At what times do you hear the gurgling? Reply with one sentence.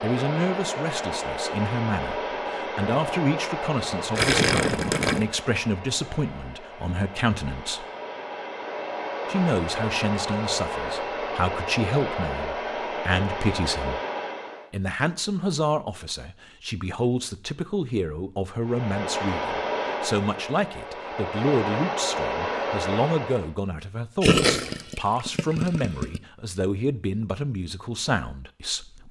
The gurgling can be heard from 4.2 to 5.2 s and from 24.2 to 26.2 s.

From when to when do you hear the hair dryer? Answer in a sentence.
You can hear the hair dryer from 0.0 to 14.7 s and from 18.6 to 23.6 s.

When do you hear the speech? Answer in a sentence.
You can hear the speech from 0.0 to 7.8 s, from 9.2 to 14.0 s and from 14.7 to 29.0 s.